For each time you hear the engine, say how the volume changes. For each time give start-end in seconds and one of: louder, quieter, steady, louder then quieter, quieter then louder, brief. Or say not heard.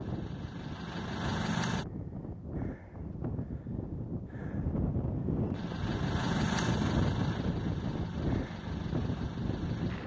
0.0-1.9 brief
5.5-10.0 quieter.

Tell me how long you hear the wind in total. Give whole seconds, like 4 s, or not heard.
10 s.